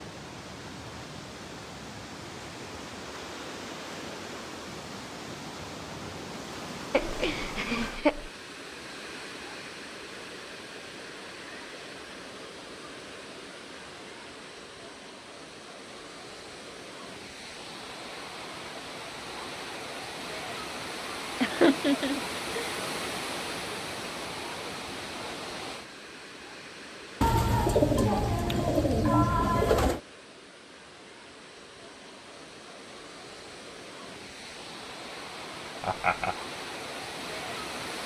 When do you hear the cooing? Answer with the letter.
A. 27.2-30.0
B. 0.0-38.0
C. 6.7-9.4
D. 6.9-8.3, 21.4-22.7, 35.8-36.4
A.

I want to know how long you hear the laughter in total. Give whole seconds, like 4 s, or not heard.
3 s.